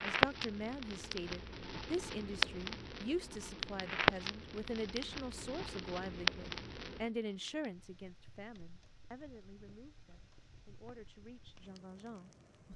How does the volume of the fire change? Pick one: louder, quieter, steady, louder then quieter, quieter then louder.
quieter.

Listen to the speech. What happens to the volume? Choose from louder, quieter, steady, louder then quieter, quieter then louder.
quieter.